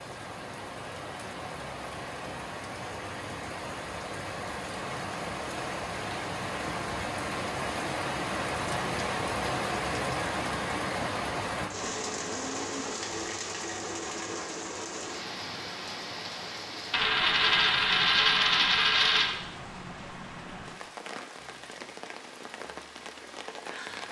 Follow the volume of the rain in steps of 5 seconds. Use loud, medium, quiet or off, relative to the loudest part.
medium, loud, loud, medium, medium.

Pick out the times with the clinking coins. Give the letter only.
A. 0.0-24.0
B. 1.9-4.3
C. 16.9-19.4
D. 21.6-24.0
C.